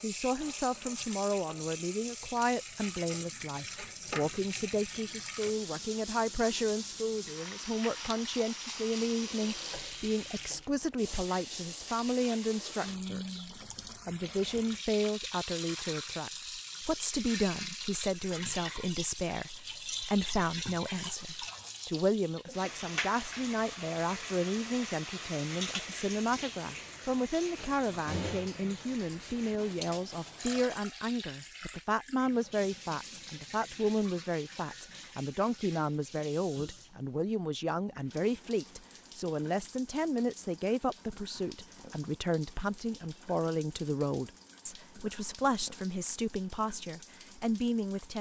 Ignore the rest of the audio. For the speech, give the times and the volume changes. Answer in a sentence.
The speech can be heard from 0.0 to 48.1 s, at a steady volume.